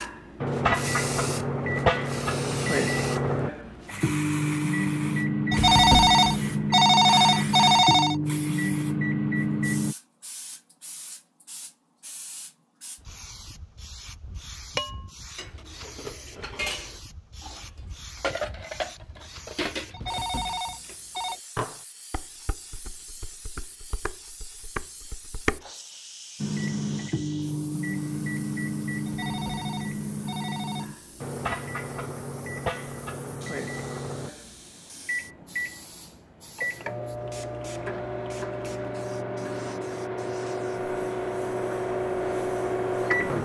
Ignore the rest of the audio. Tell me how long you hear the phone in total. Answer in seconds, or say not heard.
6 s.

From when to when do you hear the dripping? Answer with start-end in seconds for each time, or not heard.
not heard.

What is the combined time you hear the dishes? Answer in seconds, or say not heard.
11 s.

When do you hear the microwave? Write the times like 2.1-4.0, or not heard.
0.0-9.9, 26.4-43.3.